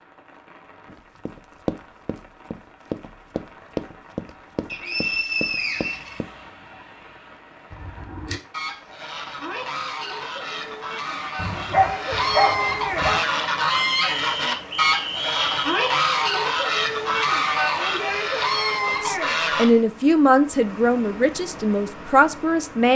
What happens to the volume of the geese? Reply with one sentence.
The loudness of the geese goes up.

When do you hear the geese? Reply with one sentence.
The geese can be heard from 7.7 to 19.7 s.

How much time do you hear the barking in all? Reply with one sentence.
You can hear the barking for 2 seconds altogether.